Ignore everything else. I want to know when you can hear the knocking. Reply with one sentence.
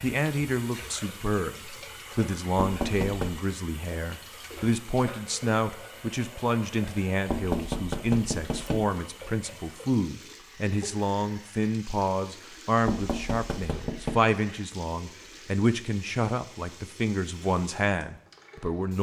You can hear the knocking from 2.5 to 3.5 s, from 7.2 to 8.8 s and from 12.8 to 14.2 s.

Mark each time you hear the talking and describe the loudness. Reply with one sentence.
The talking can be heard from 0.0 to 18.9 s, at a steady volume.